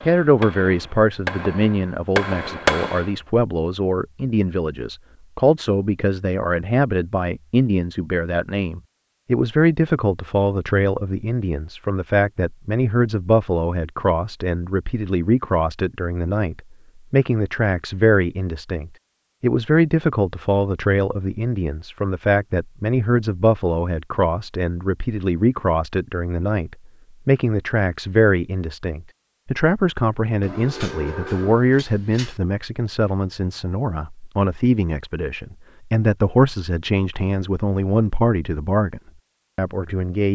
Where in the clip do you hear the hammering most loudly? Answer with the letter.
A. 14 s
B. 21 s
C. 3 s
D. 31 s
C.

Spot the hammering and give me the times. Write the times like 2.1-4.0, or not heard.
0.0-3.1.